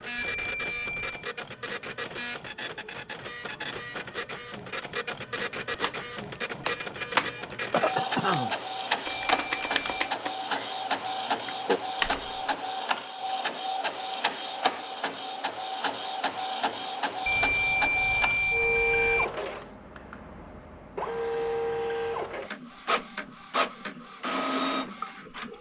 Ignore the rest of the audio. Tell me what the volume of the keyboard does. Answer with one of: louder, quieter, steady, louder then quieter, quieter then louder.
quieter then louder.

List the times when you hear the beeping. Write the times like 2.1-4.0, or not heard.
0.1-1.2, 9.1-10.2, 17.2-19.2.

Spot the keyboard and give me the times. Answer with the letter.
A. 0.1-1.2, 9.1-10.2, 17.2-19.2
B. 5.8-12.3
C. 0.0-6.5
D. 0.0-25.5
B.